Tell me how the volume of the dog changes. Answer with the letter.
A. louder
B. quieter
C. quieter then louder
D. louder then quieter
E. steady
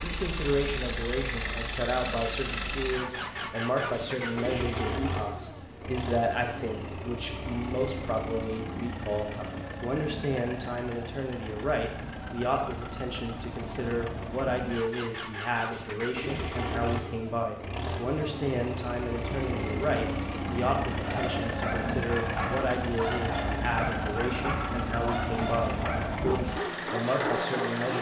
E.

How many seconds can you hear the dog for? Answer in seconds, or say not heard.
7 s.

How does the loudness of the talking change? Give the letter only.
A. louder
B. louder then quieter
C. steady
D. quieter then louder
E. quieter
C.